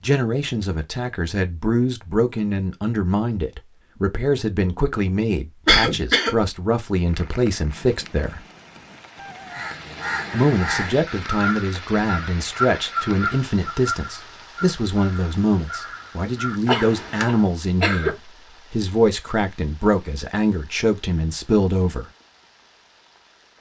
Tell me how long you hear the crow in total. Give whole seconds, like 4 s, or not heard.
8 s.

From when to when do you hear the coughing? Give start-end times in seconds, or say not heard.
5.7-6.3, 16.6-18.1.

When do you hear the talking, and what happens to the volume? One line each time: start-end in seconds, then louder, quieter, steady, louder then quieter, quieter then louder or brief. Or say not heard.
0.0-8.4 steady
10.3-22.1 steady.